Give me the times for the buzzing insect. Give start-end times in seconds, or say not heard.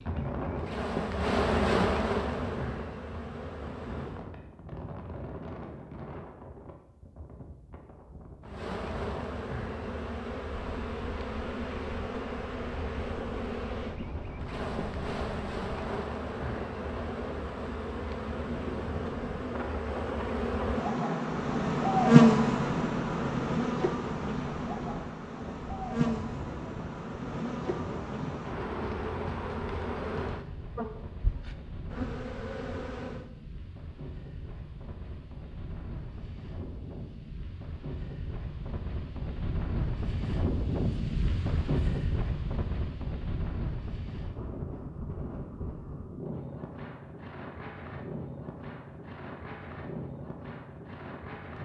0.0-4.3, 8.4-33.2.